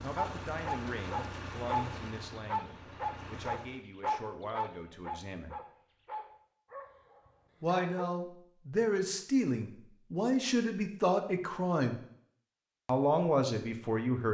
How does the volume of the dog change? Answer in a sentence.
The volume of the dog goes down.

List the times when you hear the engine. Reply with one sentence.
The engine can be heard from 0.0 to 3.9 s.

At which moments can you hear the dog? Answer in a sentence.
You can hear the dog from 0.1 to 8.1 s.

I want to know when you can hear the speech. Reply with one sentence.
You can hear the speech from 0.0 to 5.5 s, from 7.6 to 11.9 s and from 12.8 to 14.3 s.